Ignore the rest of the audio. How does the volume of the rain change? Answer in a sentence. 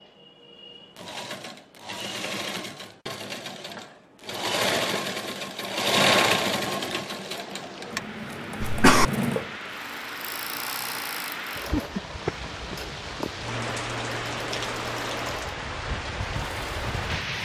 The loudness of the rain goes up.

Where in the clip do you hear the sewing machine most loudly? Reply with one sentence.
The volume of the sewing machine peaks at 6 seconds.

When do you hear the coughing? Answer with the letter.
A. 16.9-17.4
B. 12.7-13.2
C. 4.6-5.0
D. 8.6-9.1
D.